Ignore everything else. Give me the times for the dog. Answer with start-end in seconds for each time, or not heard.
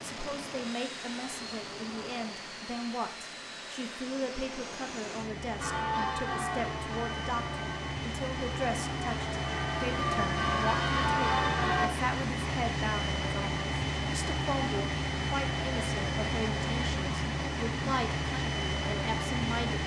not heard.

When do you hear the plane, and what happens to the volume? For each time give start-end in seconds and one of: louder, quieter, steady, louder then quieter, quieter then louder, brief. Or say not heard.
0.0-19.8 louder.